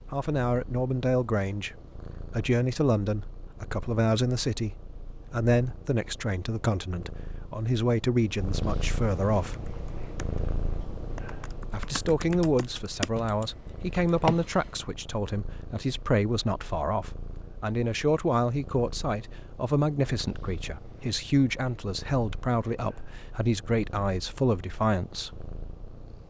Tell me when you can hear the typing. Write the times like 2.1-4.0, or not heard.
9.5-10.4, 11.2-14.8.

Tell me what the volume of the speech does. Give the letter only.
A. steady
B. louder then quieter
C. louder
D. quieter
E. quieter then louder
A.